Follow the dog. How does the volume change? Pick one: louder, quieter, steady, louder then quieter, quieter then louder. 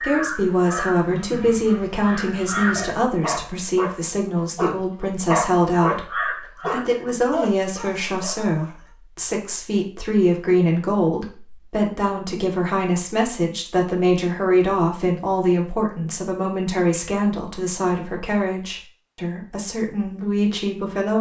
louder then quieter.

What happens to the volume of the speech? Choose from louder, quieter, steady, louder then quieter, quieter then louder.
steady.